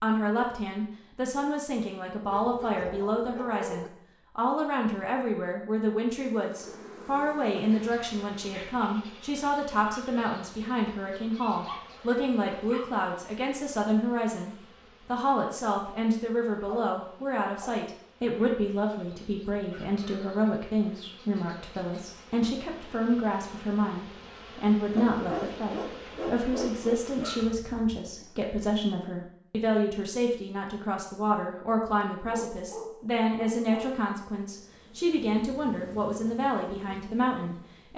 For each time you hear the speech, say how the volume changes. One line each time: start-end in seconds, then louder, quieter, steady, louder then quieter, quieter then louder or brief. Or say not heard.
0.0-37.9 steady.